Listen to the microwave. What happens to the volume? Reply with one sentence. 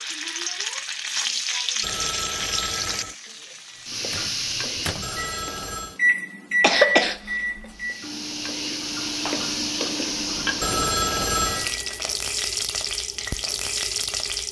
The volume of the microwave goes up, then down.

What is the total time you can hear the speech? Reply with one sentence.
The speech can't be heard in this clip.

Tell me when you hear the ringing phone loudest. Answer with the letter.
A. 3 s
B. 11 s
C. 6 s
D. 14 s
B.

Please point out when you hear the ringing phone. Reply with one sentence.
You can hear the ringing phone from 1.8 to 3.1 s, from 5.0 to 6.0 s and from 10.6 to 11.7 s.